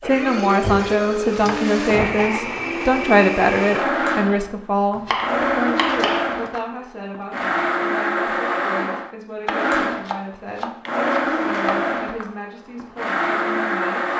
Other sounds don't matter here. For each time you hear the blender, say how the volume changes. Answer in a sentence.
The blender can be heard from 0.0 to 14.1 s, at a steady volume.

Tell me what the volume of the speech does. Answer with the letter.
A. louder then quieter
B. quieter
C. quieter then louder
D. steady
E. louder
B.